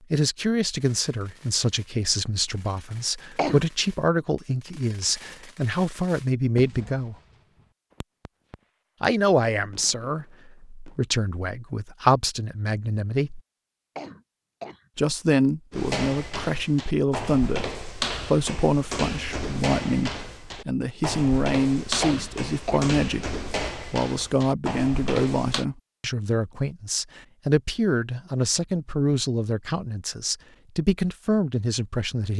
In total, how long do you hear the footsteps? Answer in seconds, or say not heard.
10 s.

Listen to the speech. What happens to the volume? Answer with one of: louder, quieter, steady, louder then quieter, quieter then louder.
steady.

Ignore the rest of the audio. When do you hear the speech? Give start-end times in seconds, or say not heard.
0.1-7.2, 9.0-13.4, 14.9-32.3.